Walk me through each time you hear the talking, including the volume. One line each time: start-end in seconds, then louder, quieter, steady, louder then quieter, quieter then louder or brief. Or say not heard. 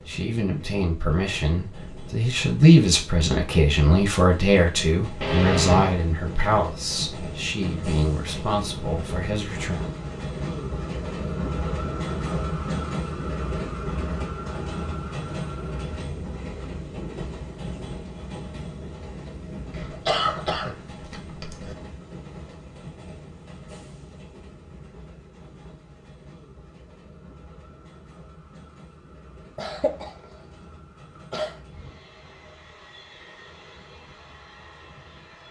0.1-9.8 louder then quieter.